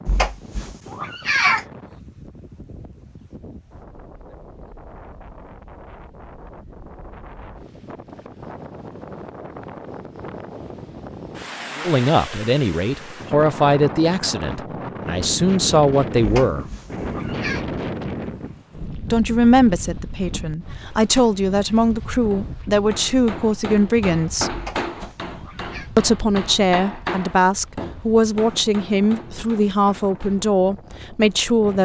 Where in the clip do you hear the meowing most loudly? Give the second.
1 s.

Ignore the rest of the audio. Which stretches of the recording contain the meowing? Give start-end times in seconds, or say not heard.
0.1-1.6, 16.2-17.6, 24.5-25.9.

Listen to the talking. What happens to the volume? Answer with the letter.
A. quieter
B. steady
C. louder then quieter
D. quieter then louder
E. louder
B.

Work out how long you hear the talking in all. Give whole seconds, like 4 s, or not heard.
16 s.